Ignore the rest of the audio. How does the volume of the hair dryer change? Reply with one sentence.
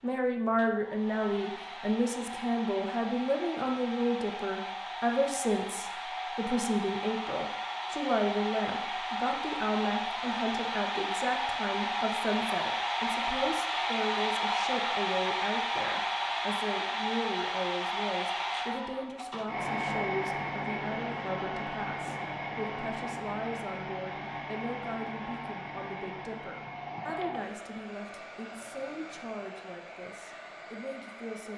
The loudness of the hair dryer goes up, then down.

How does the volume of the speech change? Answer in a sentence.
The volume of the speech goes down.